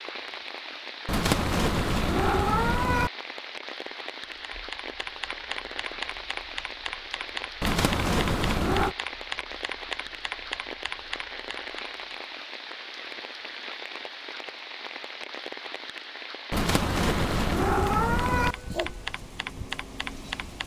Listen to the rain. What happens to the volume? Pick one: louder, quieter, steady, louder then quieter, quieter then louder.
steady.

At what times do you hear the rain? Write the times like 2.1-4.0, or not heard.
0.0-20.6.